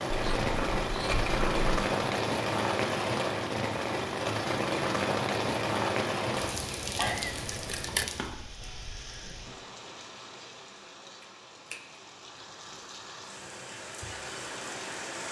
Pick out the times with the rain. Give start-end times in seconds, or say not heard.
0.0-15.2.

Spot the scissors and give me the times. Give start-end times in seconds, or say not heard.
0.1-1.8, 7.0-8.1, 11.2-11.8.